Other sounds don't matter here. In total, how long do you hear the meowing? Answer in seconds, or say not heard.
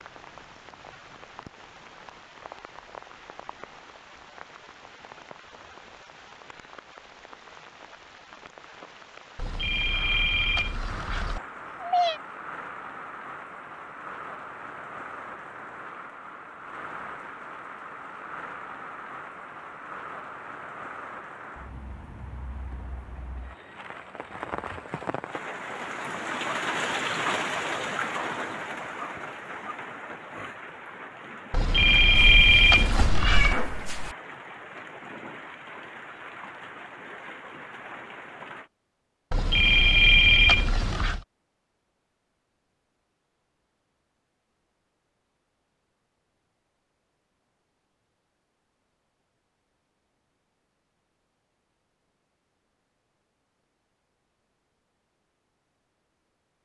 3 s.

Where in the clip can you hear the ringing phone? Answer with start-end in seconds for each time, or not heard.
9.3-11.4, 31.5-33.5, 39.3-41.2.